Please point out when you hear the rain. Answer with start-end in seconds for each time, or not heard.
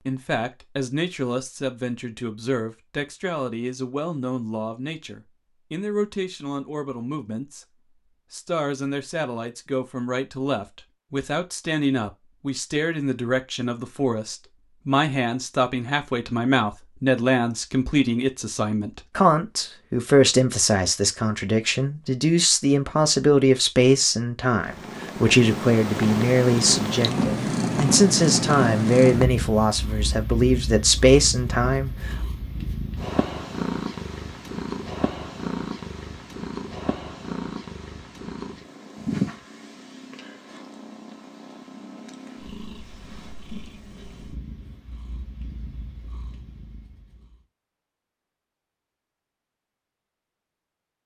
not heard.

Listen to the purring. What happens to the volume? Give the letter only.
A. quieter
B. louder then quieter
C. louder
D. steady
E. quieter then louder
A.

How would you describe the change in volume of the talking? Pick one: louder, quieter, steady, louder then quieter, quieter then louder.
louder.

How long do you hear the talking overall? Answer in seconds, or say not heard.
32 s.